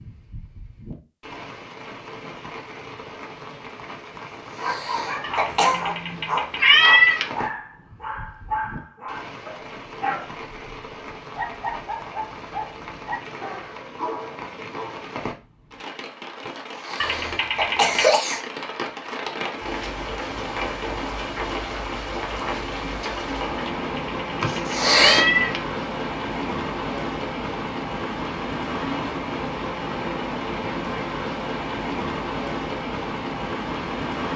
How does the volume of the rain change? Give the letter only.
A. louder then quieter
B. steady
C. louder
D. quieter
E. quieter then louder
C.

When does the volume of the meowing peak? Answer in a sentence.
The volume of the meowing peaks at 7 seconds.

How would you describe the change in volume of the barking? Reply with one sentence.
The loudness of the barking goes down.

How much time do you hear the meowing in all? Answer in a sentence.
The meowing can be heard for 5 seconds in total.